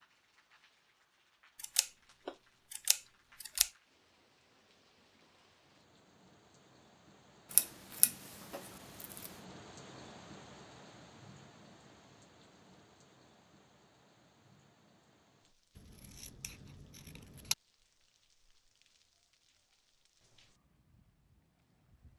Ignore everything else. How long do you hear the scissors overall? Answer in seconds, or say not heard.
6 s.